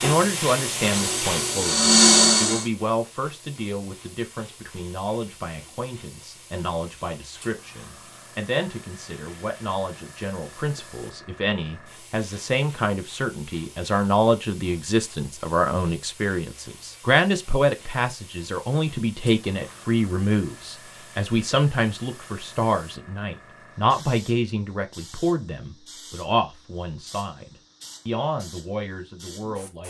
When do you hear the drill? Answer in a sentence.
The drill can be heard from 0.0 to 2.6 s.